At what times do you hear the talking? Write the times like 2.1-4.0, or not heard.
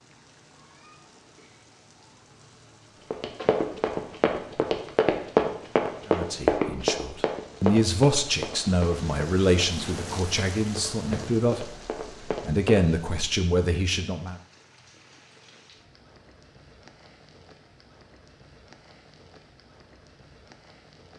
6.0-14.3.